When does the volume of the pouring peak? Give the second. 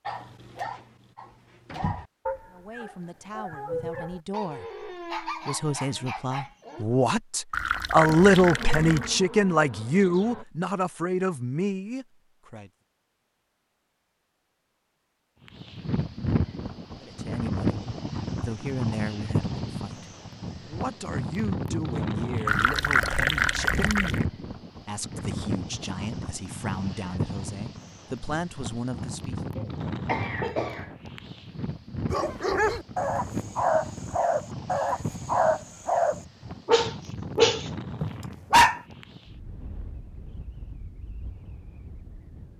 23 s.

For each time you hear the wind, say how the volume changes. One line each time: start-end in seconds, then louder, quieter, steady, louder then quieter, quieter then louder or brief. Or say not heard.
15.4-42.5 quieter.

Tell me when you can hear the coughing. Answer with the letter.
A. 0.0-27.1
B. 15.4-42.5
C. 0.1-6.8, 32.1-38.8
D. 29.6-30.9
D.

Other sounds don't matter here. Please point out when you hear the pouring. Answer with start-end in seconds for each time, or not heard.
7.5-9.2, 22.4-24.2.